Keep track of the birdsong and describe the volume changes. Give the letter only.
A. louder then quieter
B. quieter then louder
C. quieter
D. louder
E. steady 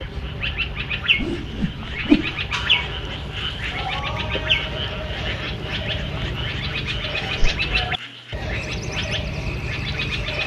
E.